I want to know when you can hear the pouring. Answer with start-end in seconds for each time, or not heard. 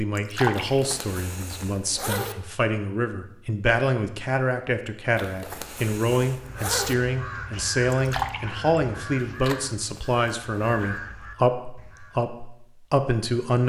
0.1-0.8, 7.9-8.6.